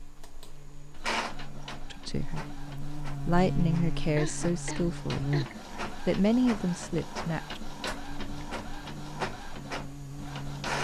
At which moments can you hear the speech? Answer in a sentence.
The speech can be heard from 1.9 to 5.3 s and from 6.0 to 7.6 s.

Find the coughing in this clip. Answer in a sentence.
You can hear the coughing from 4.2 to 5.7 s.